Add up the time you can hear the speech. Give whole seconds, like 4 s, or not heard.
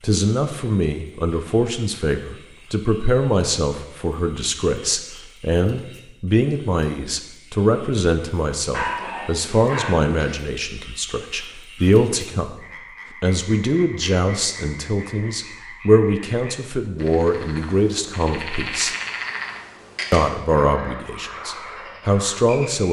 21 s.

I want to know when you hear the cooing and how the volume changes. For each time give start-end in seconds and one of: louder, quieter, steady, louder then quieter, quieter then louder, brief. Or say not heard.
not heard.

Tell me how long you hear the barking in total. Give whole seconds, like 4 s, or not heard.
2 s.